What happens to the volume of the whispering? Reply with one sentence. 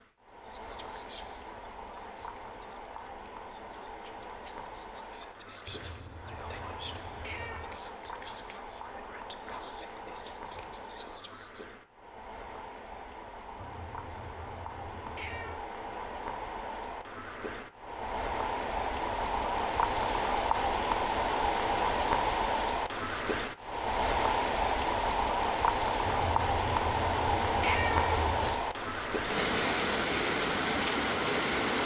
The loudness of the whispering goes up.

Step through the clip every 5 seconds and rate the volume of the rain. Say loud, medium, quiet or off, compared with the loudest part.
quiet, quiet, quiet, medium, loud, loud, loud.